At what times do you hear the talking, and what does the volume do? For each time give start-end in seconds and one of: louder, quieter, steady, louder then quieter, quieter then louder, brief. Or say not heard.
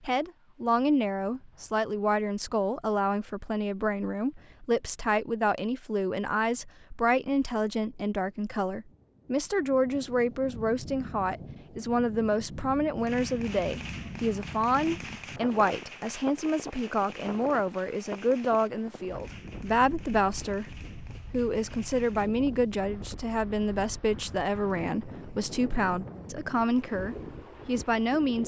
0.0-28.4 steady.